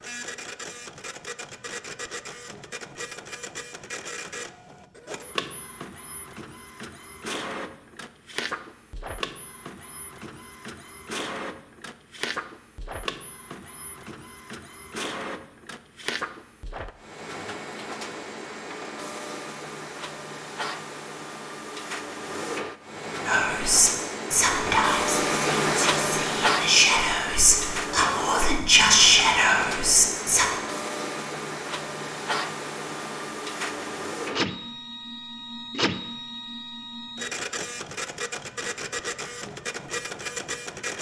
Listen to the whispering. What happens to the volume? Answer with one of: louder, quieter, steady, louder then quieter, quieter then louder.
quieter then louder.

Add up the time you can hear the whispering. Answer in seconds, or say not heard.
7 s.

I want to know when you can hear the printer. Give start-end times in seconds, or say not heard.
0.0-40.9.